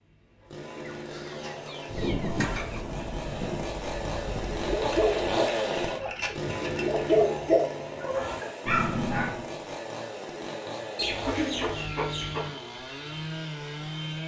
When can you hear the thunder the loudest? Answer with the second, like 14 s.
2 s.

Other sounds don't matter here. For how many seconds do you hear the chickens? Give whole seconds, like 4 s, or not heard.
6 s.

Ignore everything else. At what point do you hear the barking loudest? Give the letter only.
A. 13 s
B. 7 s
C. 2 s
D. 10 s
B.